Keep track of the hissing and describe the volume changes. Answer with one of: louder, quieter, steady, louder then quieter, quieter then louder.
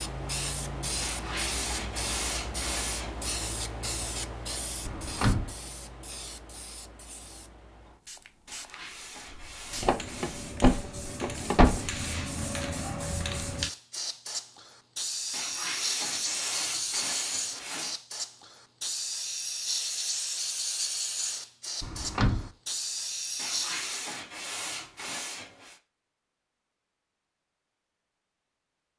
quieter then louder.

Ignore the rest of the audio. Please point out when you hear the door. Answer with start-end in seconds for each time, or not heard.
4.8-5.5, 9.8-11.9, 21.8-22.5.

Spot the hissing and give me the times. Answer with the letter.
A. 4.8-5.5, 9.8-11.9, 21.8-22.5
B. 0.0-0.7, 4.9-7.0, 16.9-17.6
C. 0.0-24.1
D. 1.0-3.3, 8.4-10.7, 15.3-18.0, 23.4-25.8
C.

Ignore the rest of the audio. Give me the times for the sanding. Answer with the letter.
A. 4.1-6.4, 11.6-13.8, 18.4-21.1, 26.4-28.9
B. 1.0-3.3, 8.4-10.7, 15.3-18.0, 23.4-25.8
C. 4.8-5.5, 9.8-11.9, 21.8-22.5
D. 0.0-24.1
B.